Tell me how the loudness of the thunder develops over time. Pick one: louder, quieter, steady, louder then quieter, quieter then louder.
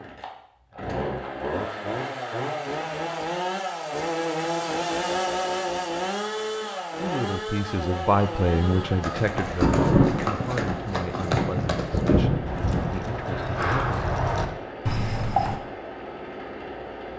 quieter then louder.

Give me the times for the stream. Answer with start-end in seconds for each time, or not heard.
not heard.